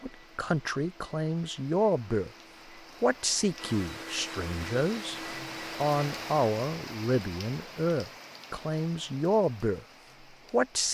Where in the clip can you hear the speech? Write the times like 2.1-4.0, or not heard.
0.0-2.3, 3.0-5.2, 5.8-9.8, 10.5-10.9.